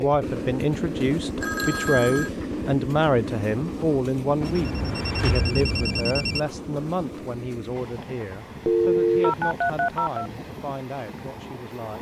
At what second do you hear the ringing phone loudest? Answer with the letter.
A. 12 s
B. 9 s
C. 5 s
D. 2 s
B.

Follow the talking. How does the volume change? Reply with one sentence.
The volume of the talking goes down.